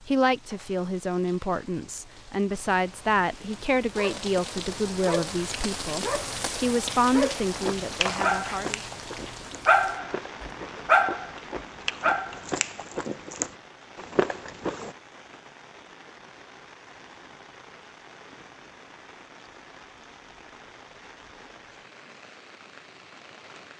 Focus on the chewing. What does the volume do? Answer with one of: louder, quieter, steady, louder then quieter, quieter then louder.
quieter then louder.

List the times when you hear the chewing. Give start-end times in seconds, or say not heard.
7.5-14.9.